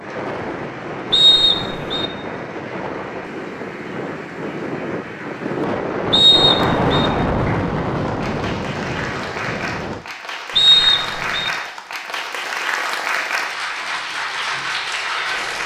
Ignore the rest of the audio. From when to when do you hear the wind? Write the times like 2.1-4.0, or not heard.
0.0-10.1.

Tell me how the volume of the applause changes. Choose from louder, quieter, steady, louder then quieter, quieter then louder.
louder.